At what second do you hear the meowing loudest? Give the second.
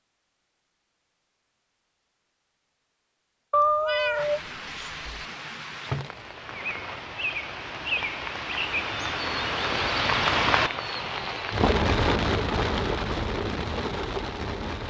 4 s.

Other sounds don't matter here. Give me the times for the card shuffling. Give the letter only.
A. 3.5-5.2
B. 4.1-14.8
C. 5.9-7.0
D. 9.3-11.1
C.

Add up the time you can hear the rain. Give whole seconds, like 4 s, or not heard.
11 s.